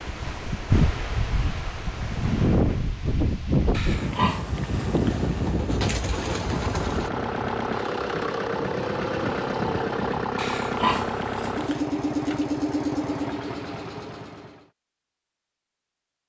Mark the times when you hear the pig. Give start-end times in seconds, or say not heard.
3.7-5.2, 10.3-11.8.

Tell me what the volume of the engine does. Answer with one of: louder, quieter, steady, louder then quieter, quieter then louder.
steady.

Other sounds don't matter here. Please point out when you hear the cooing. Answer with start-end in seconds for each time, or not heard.
5.1-7.1.